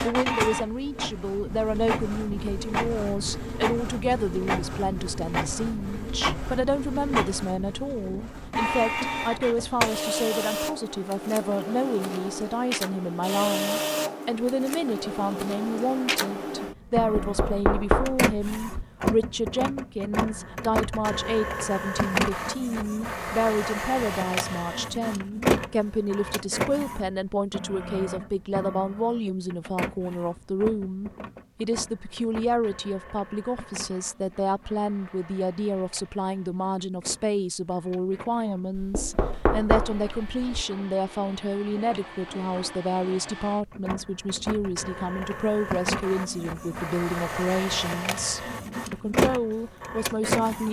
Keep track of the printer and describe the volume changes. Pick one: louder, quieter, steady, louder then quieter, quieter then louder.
quieter then louder.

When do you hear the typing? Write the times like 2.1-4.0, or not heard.
not heard.